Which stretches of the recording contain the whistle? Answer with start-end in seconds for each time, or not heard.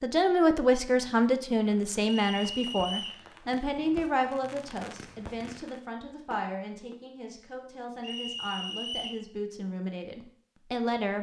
2.0-3.2, 8.0-9.2.